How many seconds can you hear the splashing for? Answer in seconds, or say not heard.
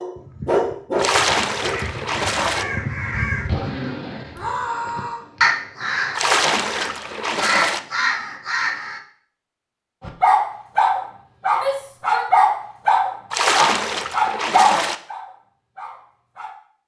5 s.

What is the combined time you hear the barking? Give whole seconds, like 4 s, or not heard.
10 s.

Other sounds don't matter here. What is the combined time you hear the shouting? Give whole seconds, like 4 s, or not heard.
2 s.